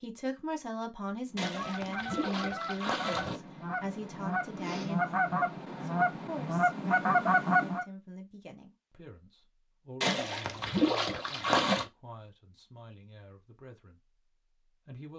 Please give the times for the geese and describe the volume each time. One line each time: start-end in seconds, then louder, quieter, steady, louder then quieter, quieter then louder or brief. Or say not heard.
1.3-7.8 louder.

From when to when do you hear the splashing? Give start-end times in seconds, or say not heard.
1.4-3.4, 10.0-11.8.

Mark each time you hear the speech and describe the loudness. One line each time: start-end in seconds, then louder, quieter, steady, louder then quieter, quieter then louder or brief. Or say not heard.
0.0-15.1 quieter.